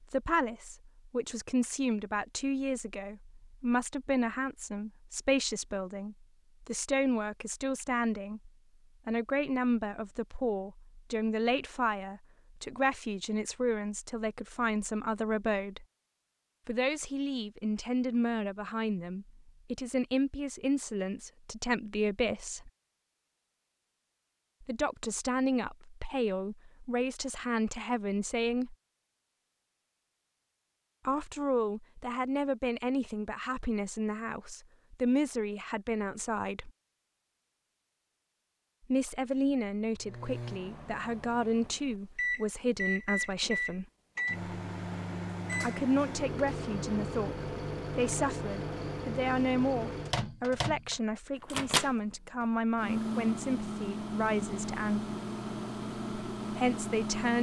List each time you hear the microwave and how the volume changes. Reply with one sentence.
You can hear the microwave from 40.0 to 57.3 s, at a steady volume.